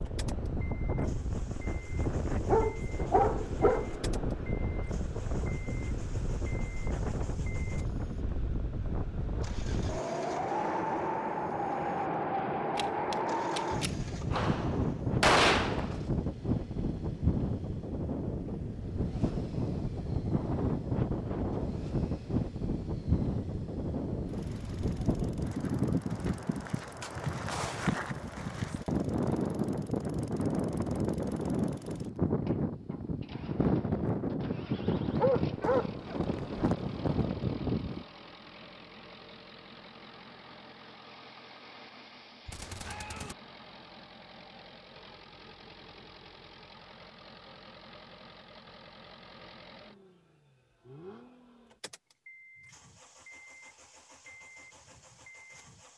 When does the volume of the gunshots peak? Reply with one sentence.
The volume of the gunshots peaks at 15 seconds.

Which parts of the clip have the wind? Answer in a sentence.
The wind can be heard from 0.0 to 38.0 s.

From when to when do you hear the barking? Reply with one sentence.
You can hear the barking from 2.0 to 3.9 s and from 35.0 to 36.4 s.